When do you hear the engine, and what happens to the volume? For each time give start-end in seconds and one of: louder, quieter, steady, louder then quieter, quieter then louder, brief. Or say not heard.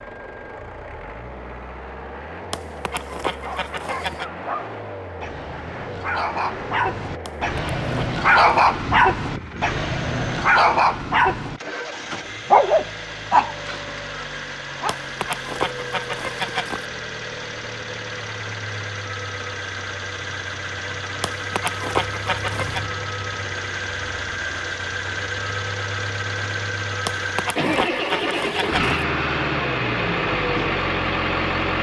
0.0-31.7 louder.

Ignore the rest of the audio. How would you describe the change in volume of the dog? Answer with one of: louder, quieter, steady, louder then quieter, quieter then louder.
louder.